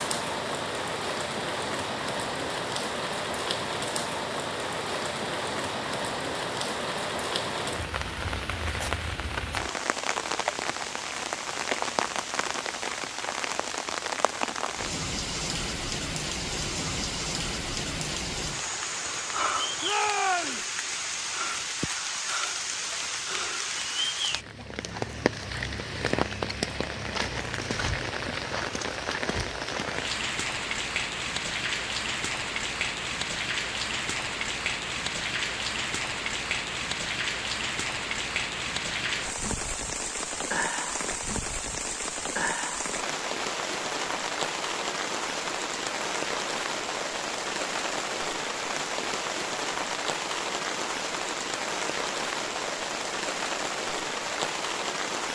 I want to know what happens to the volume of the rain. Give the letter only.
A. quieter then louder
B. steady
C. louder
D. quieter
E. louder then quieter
B.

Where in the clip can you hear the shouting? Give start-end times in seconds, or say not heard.
19.8-20.6.